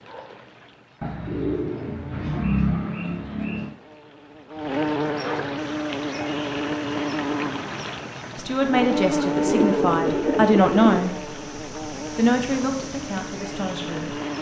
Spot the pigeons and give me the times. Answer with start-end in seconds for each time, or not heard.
1.0-3.8, 9.4-11.1.